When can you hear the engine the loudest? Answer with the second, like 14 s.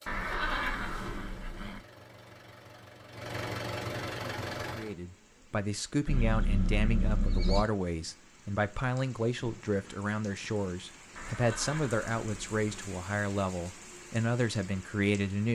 4 s.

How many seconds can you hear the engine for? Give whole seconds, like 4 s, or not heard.
5 s.